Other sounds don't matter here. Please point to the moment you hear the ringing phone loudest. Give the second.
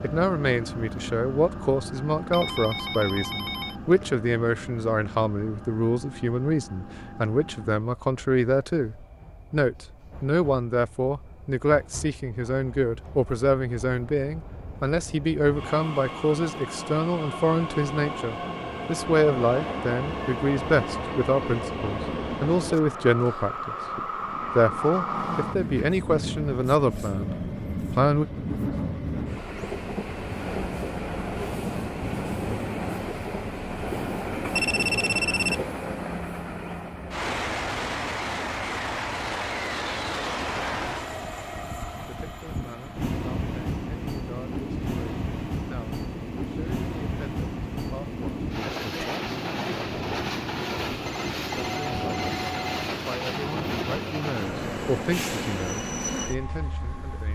35 s.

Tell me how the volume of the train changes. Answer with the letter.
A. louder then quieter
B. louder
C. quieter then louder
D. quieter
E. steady
B.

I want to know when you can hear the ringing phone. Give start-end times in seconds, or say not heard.
2.3-4.0, 34.5-35.6, 51.0-52.9.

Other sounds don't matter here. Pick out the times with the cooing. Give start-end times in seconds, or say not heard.
not heard.